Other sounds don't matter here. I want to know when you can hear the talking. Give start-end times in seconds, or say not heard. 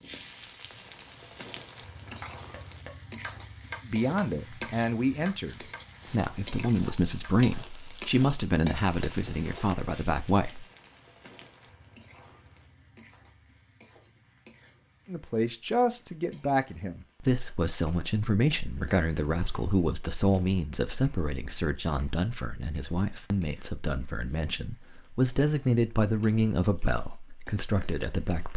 3.9-10.7, 15.1-28.5.